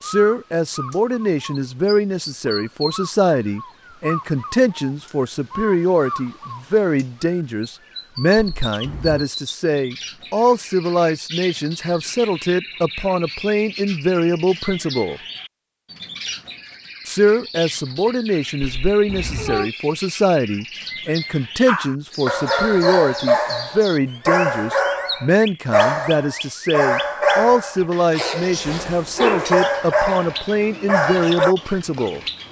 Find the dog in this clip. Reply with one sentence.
You can hear the dog from 21.6 to 31.6 s.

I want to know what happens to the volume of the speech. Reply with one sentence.
The loudness of the speech stays about the same.